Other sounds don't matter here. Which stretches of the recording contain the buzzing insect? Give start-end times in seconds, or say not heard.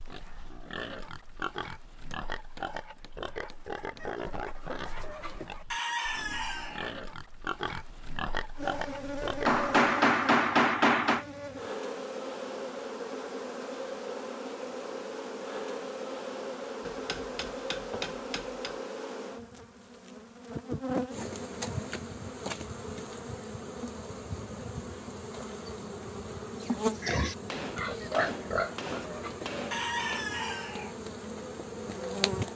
8.6-32.5.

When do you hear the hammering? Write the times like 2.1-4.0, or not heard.
2.1-4.0, 9.4-11.2, 16.9-18.8, 27.4-30.3.